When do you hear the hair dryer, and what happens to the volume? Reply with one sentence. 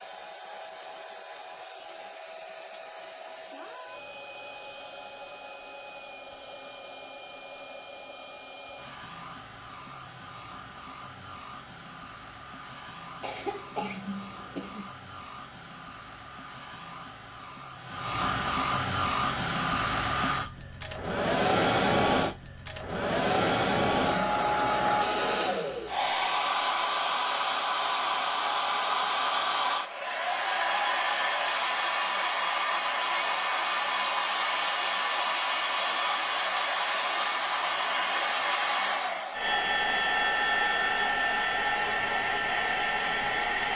You can hear the hair dryer from 0.0 to 43.7 s, getting louder.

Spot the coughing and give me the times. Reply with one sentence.
You can hear the coughing from 13.2 to 14.9 s.